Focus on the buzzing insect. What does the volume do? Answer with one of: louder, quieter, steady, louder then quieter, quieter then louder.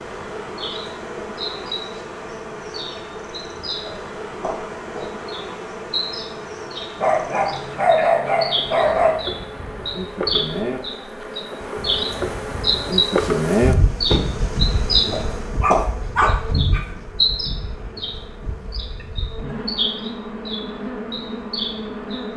louder then quieter.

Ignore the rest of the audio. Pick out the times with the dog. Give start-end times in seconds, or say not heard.
7.0-9.2, 15.6-16.9.